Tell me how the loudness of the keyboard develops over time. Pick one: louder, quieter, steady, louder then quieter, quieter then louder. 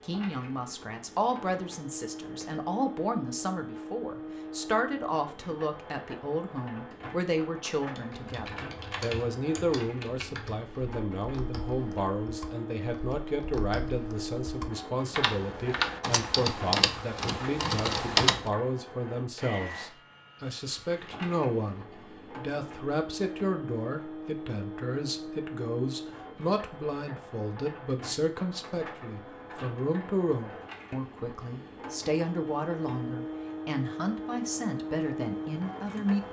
quieter then louder.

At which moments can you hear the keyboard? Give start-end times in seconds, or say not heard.
8.0-18.4.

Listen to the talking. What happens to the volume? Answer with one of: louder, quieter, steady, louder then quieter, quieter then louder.
steady.